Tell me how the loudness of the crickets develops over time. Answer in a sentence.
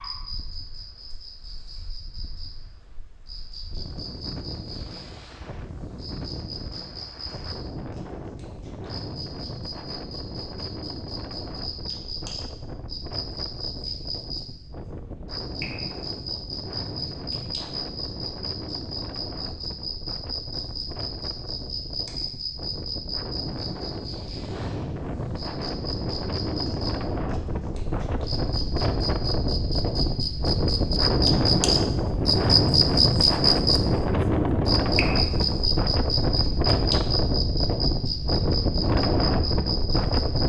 The volume of the crickets goes up.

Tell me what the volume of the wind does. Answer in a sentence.
The volume of the wind goes up.